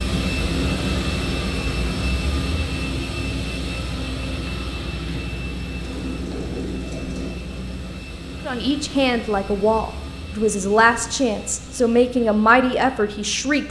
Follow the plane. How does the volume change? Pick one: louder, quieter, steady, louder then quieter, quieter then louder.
quieter.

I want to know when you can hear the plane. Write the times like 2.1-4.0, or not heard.
0.0-13.6.